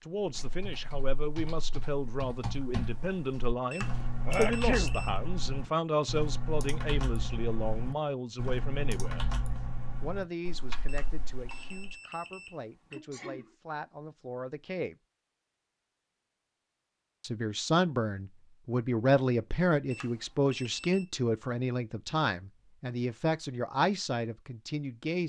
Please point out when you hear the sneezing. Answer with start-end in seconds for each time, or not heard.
4.2-4.9, 12.9-13.5.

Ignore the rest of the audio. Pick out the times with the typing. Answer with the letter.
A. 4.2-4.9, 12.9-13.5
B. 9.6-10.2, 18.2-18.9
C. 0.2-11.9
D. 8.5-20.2
C.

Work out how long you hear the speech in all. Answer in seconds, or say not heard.
22 s.